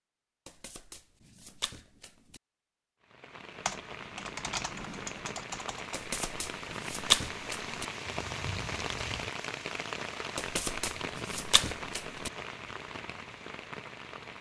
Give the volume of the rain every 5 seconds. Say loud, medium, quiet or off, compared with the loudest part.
medium, loud, loud.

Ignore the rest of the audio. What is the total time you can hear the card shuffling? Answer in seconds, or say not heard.
6 s.